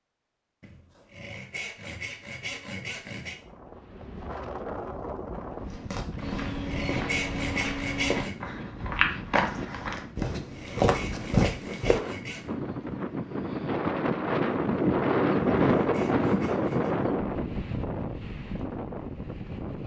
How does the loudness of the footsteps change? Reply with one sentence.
The loudness of the footsteps goes up.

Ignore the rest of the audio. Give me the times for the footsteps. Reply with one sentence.
You can hear the footsteps from 5.6 to 12.0 s.